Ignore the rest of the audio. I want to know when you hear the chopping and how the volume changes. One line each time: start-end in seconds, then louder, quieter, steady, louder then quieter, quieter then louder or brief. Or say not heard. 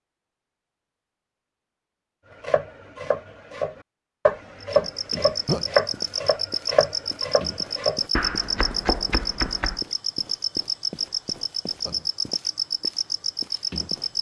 2.4-9.8 louder then quieter.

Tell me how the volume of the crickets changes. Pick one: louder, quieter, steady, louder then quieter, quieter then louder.
steady.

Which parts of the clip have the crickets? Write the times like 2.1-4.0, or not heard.
4.6-14.1.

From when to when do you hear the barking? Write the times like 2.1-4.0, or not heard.
not heard.